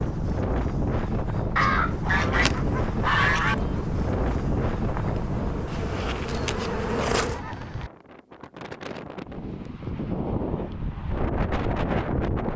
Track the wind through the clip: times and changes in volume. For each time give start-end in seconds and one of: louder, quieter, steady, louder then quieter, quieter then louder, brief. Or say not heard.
0.0-12.5 quieter then louder.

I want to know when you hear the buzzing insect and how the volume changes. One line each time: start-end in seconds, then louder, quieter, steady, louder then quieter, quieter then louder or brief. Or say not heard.
2.3-7.4 louder.